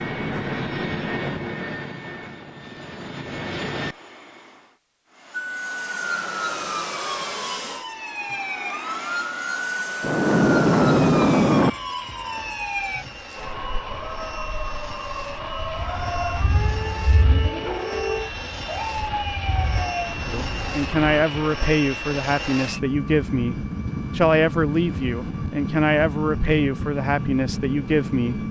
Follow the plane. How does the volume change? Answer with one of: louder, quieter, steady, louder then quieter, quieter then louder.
quieter then louder.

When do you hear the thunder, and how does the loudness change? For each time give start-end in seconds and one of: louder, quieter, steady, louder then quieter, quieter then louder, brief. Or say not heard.
10.0-11.7 brief
15.6-19.9 quieter then louder.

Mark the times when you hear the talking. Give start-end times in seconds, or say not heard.
20.3-28.4.